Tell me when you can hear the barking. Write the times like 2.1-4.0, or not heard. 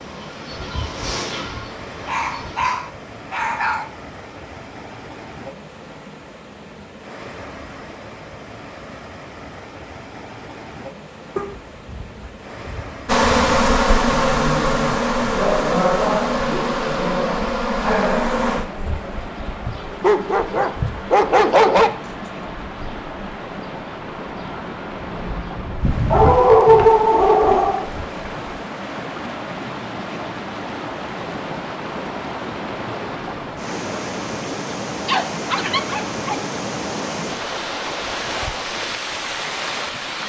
2.0-3.9, 11.3-13.8, 20.0-21.9, 26.1-27.9, 35.0-36.4.